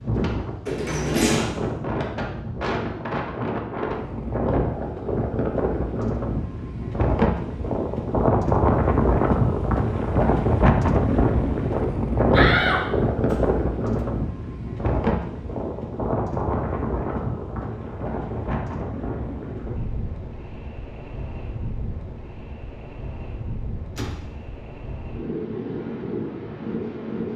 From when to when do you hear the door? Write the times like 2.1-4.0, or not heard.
0.7-1.5, 12.3-13.6, 23.9-24.4.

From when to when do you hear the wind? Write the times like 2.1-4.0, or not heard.
0.0-27.3.